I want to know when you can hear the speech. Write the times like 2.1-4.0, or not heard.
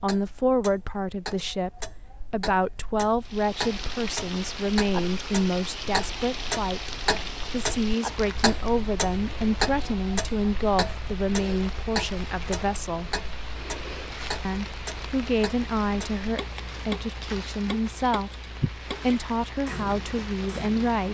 0.0-13.2, 14.4-18.3, 18.9-21.0.